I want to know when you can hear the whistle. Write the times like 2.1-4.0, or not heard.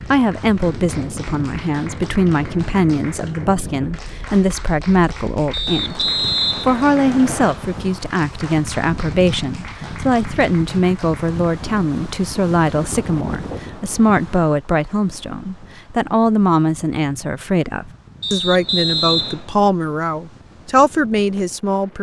5.5-7.5, 18.2-19.5.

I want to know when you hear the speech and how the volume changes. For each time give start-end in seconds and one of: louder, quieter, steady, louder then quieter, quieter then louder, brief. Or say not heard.
0.1-21.9 steady.